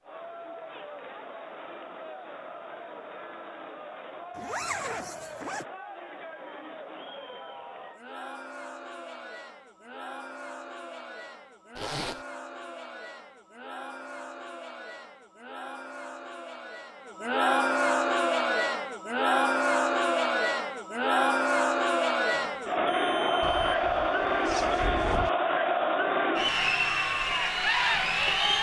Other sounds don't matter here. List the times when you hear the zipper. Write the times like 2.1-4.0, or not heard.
4.3-5.7, 11.8-12.2, 23.4-25.3.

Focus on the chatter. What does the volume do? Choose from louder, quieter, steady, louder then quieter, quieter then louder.
louder.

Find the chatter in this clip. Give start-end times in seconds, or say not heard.
0.0-28.5.